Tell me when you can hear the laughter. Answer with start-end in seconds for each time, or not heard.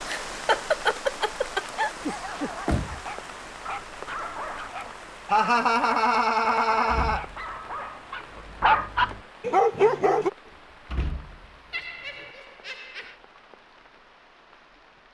0.1-1.9, 5.3-7.2, 11.7-13.2.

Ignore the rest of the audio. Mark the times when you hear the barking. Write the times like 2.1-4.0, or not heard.
2.0-10.3.